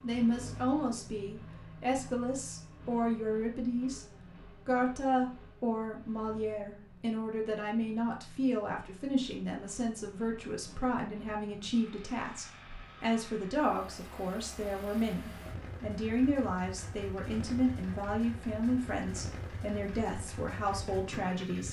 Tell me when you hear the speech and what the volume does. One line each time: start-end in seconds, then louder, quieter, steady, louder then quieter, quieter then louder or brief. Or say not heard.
0.0-21.6 steady.